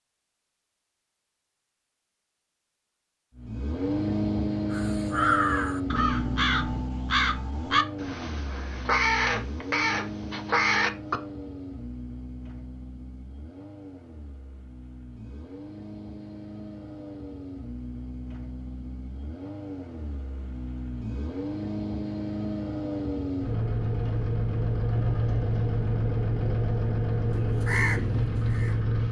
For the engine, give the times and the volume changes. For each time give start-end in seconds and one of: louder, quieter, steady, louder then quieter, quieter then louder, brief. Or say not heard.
3.4-29.0 quieter then louder.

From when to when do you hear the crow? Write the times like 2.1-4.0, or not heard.
4.7-11.2, 27.2-28.9.